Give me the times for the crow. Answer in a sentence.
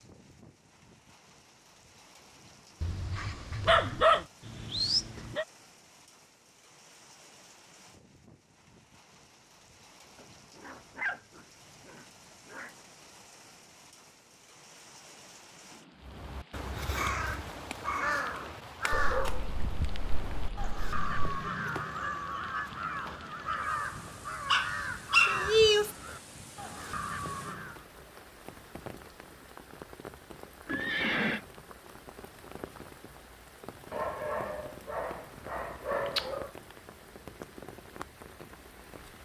The crow can be heard from 16.0 to 27.9 s.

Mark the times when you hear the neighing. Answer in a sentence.
You can hear the neighing from 30.6 to 31.4 s.